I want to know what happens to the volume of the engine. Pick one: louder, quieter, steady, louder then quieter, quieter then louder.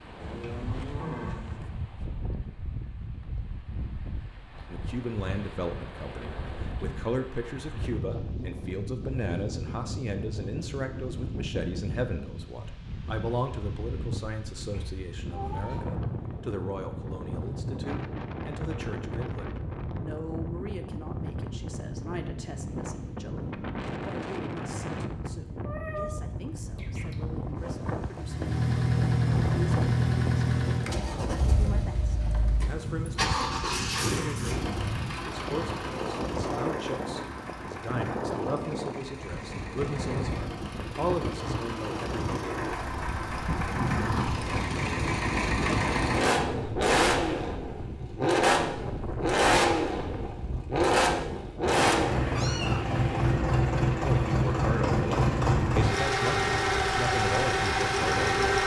quieter then louder.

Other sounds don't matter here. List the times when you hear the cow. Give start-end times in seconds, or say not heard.
0.2-1.6.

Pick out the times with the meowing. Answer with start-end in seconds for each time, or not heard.
14.7-16.0, 25.6-27.1, 52.0-53.4.